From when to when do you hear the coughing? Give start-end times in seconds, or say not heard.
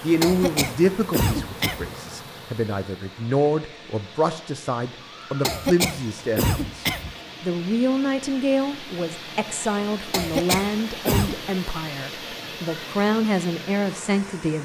0.2-1.9, 5.4-7.2, 10.1-11.3.